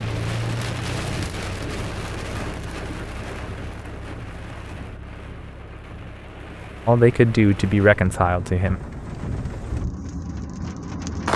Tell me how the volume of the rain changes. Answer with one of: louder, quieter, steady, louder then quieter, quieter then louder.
quieter then louder.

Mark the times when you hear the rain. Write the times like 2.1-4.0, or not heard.
0.0-11.3.